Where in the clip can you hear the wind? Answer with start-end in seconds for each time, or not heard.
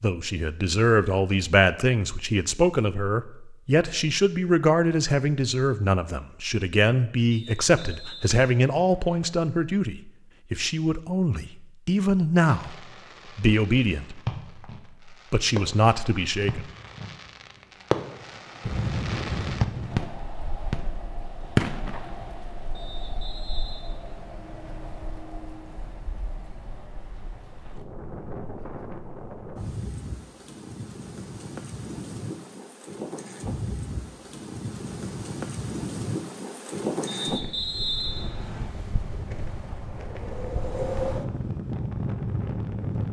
18.6-43.0.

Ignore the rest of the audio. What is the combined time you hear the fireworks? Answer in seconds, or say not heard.
10 s.